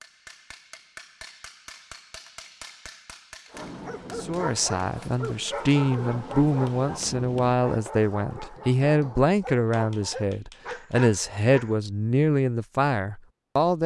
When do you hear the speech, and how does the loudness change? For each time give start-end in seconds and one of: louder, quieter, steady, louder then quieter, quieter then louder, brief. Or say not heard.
4.2-13.8 steady.